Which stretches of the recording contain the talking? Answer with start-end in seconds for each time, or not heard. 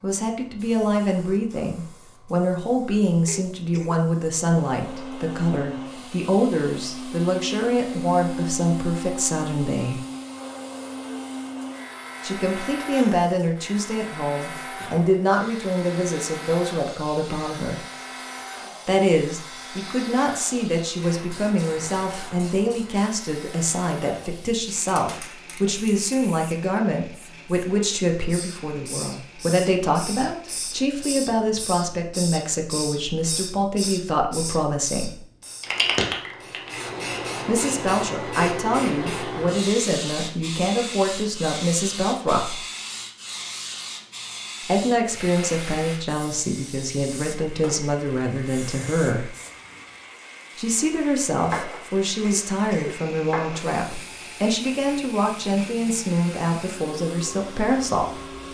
0.0-10.0, 12.2-17.8, 18.9-35.2, 37.5-42.6, 44.6-49.4, 50.5-58.1.